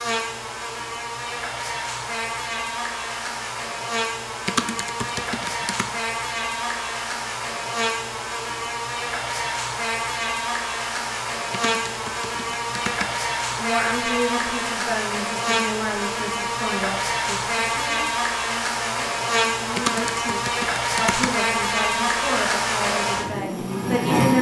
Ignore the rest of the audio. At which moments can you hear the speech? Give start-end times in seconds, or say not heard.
13.5-24.3.